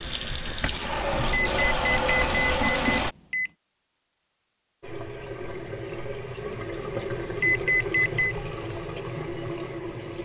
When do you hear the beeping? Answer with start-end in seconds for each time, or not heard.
1.3-3.5, 7.4-8.3.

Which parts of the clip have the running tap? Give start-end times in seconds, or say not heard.
0.0-3.1, 4.8-10.2.